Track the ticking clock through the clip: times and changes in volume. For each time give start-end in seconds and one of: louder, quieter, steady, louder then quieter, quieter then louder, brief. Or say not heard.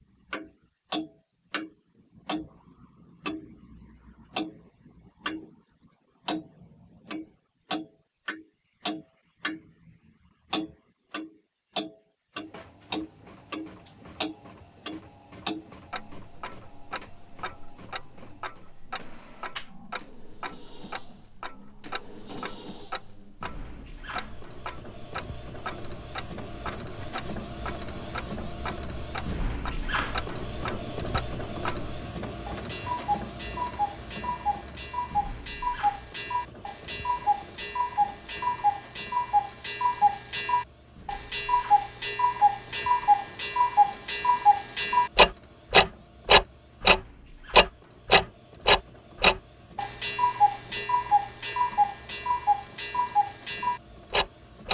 0.3-5.5 quieter then louder
6.2-54.6 quieter then louder.